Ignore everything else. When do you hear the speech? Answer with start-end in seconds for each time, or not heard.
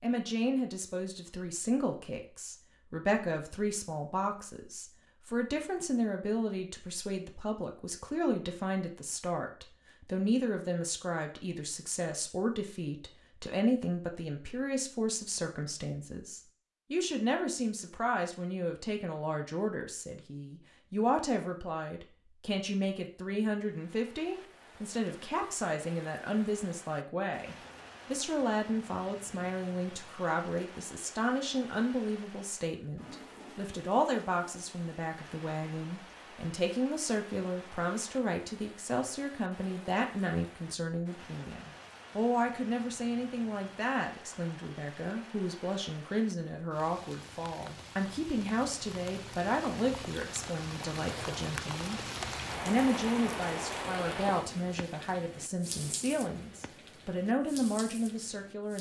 0.0-52.0, 52.6-58.7.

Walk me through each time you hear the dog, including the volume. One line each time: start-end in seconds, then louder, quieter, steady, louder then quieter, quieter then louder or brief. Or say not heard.
not heard.